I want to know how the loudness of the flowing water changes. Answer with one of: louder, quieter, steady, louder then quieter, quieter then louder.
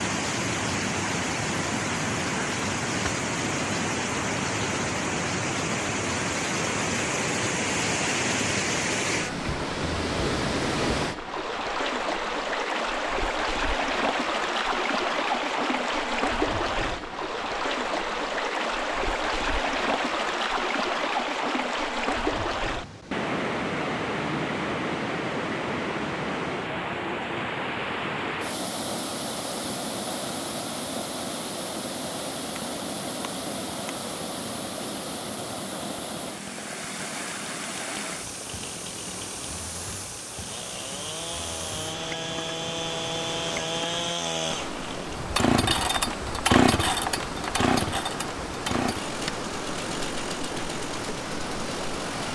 quieter.